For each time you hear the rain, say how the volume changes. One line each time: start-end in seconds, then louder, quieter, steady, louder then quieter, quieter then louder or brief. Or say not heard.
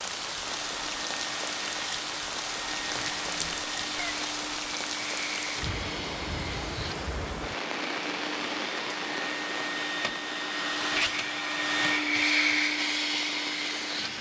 0.0-14.1 quieter.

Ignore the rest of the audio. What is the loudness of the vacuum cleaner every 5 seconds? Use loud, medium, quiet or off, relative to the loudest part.
medium, medium, loud.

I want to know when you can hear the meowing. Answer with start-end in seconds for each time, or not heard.
2.9-4.1.